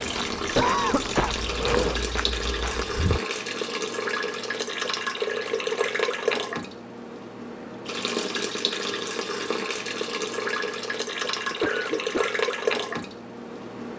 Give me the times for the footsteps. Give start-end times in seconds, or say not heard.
0.0-3.2.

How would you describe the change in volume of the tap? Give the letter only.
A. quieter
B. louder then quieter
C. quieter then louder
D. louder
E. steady
E.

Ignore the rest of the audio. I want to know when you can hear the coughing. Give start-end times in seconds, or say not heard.
0.6-2.0, 5.5-6.0, 11.5-12.3.